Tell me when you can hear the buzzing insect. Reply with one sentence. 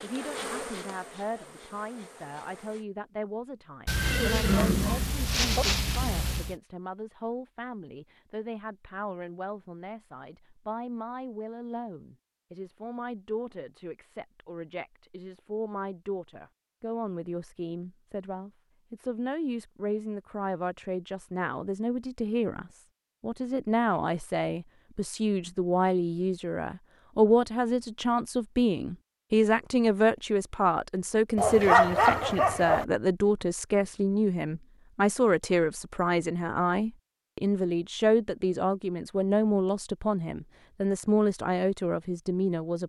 The buzzing insect can be heard from 0.0 to 2.9 s.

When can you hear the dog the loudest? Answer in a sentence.
The volume of the dog peaks at 32 seconds.